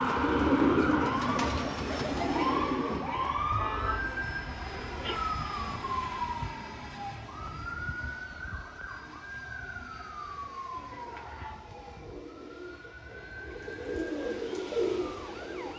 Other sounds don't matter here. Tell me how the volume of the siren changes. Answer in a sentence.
The volume of the siren goes down.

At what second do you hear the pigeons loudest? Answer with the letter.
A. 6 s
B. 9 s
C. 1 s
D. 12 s
C.